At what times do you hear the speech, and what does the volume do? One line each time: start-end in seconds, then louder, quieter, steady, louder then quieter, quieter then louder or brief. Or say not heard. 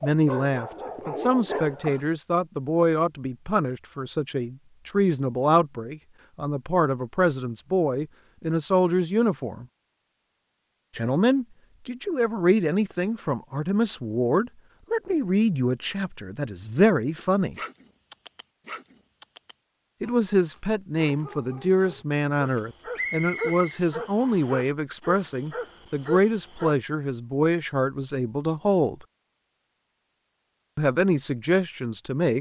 0.0-9.7 steady
10.9-17.6 steady
20.0-29.1 steady
30.8-32.3 brief.